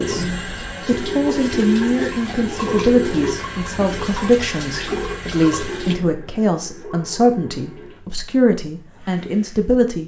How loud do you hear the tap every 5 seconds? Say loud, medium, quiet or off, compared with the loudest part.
loud, medium.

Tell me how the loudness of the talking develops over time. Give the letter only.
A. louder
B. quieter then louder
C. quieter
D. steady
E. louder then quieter
D.